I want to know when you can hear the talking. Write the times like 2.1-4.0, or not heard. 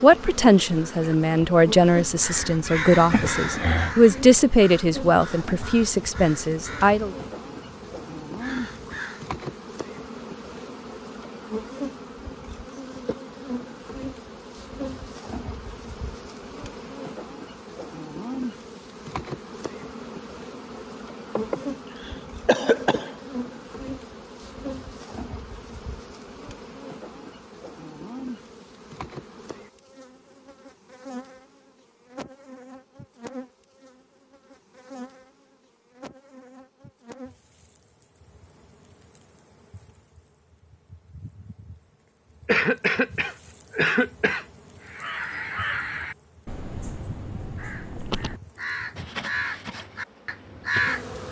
0.0-7.2.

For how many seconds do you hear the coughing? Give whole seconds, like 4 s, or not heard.
5 s.